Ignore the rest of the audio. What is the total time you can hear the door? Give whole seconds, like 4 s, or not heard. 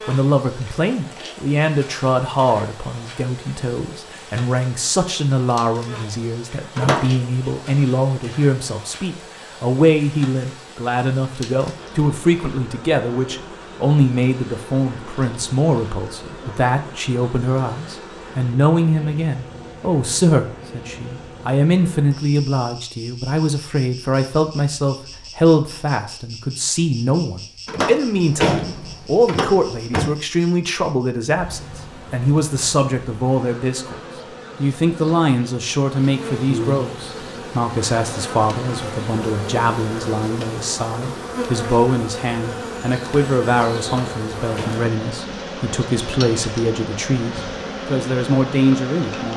4 s.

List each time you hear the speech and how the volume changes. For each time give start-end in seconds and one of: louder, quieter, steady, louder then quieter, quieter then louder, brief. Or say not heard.
0.1-49.3 steady.